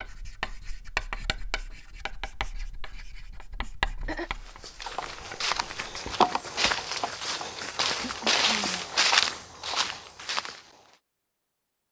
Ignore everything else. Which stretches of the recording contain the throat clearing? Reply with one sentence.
The throat clearing can be heard from 3.6 to 4.3 s and from 8.0 to 8.8 s.